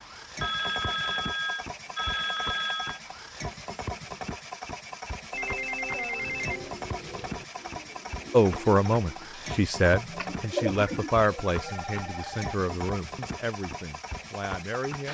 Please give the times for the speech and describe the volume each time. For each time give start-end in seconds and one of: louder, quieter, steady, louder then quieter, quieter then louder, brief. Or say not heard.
8.3-15.0 quieter.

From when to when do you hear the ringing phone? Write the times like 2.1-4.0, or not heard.
0.4-3.0, 5.3-6.7, 11.6-12.6.